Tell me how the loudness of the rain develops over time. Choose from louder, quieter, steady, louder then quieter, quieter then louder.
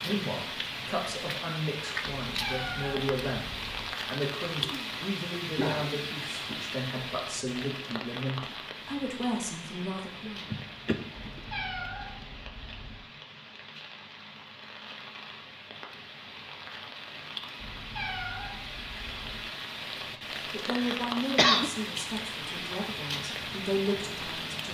quieter then louder.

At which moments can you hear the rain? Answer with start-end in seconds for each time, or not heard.
0.0-24.6.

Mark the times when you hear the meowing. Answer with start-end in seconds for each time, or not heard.
2.2-3.9, 11.2-13.0, 17.6-19.4.